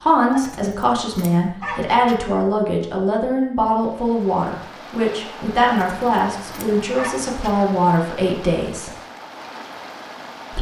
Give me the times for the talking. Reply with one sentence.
The talking can be heard from 0.0 to 8.9 s.